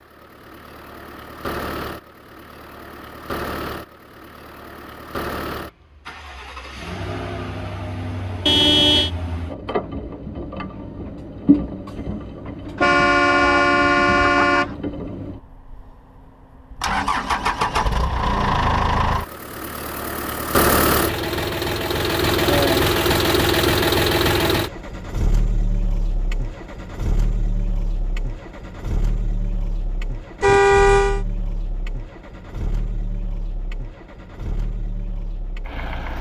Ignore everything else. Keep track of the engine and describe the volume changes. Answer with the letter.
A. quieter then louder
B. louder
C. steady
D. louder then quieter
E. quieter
D.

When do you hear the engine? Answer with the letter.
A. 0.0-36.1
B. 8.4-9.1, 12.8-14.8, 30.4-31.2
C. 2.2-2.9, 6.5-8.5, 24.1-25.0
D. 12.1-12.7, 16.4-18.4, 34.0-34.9
A.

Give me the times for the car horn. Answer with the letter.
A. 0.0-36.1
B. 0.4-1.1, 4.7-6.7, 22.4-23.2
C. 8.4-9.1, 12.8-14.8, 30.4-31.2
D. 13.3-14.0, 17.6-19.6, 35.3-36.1
C.